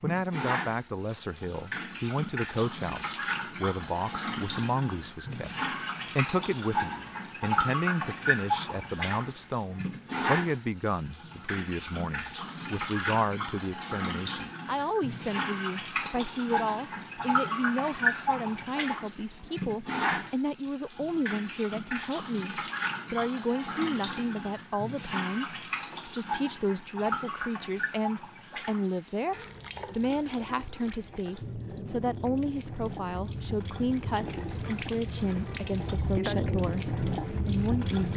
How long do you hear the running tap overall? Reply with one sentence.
The running tap can be heard for 38 seconds in total.